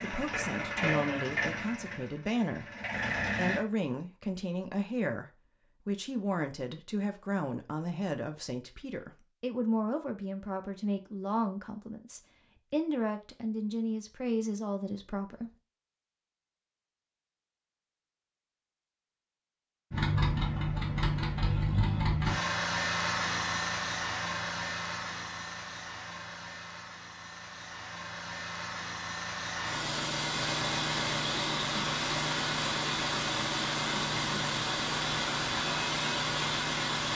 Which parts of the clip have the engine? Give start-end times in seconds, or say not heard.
0.0-3.6, 19.9-37.0.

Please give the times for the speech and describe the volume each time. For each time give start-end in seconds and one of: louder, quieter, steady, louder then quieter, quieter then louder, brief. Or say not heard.
0.0-15.6 steady.